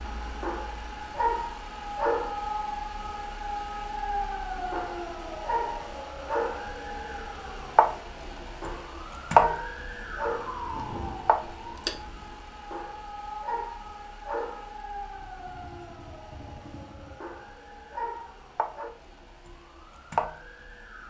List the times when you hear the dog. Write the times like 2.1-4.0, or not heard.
0.4-2.5, 4.7-6.7, 8.6-10.7, 12.7-14.8, 17.2-18.9.